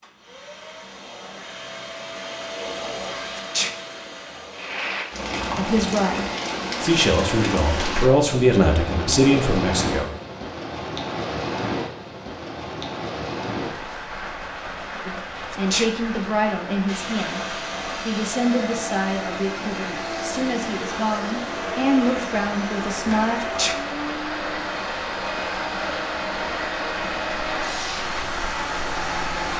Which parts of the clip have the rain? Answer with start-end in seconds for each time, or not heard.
4.5-29.5.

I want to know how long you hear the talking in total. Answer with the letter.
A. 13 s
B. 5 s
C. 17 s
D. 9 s
A.